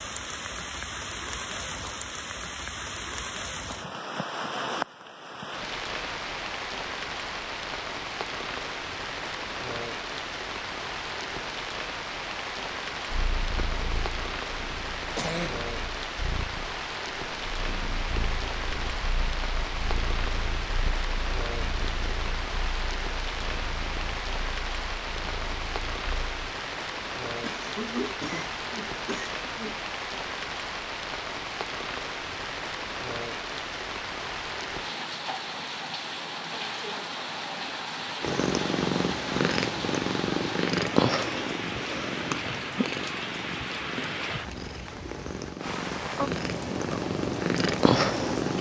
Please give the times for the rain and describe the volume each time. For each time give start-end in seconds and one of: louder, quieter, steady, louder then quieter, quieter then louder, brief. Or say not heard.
0.0-48.5 steady.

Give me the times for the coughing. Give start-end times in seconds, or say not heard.
15.2-15.7, 27.4-29.8.